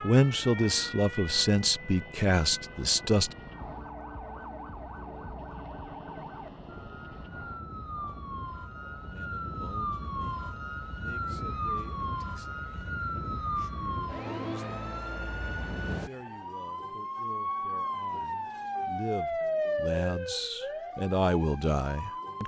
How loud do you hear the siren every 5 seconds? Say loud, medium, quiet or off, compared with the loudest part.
medium, medium, loud, loud, medium.